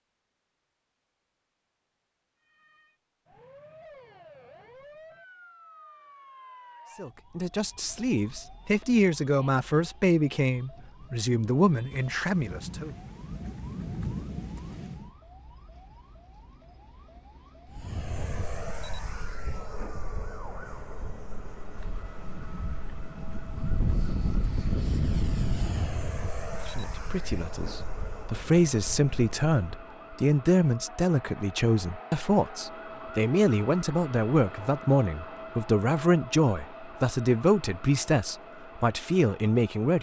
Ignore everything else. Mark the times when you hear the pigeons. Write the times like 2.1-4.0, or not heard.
not heard.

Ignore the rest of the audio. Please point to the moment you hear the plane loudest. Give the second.
25 s.